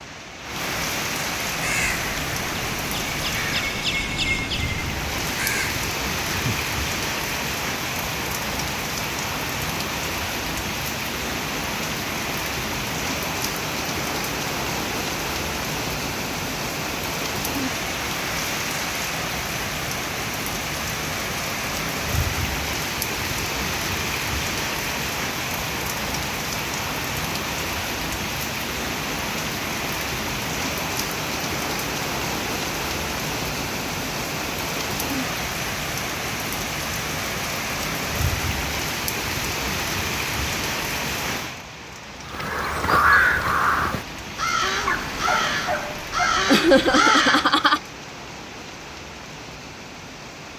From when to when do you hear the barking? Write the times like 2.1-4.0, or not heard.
44.8-46.5.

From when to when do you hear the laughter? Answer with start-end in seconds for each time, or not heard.
46.5-47.8.